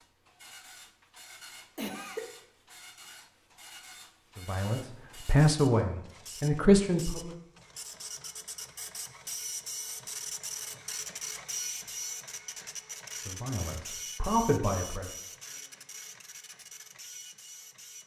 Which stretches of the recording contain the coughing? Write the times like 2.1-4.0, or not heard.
1.8-2.2.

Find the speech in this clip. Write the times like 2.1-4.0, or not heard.
4.3-7.3, 13.2-15.2.